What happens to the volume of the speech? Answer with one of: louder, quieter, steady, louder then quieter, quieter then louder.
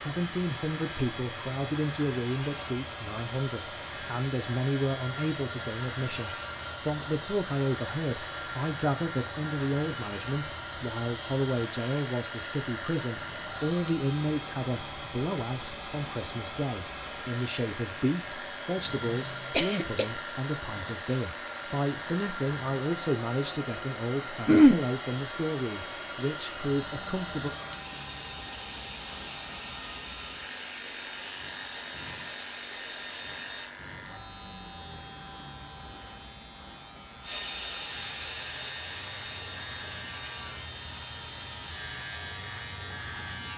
steady.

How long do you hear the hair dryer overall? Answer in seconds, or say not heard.
40 s.